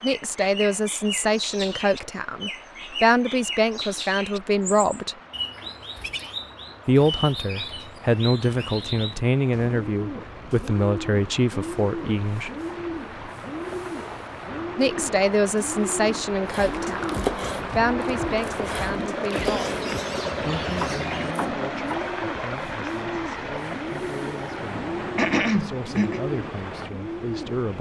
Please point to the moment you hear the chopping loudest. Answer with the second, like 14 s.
17 s.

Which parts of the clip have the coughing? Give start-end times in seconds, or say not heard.
25.1-26.2.